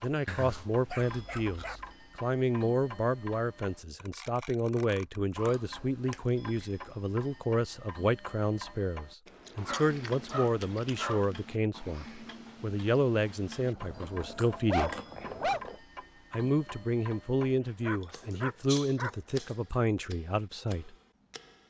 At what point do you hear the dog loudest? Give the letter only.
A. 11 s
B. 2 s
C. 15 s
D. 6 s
C.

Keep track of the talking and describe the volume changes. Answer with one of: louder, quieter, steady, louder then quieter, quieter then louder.
steady.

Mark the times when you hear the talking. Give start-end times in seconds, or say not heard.
0.0-14.9, 16.3-20.9.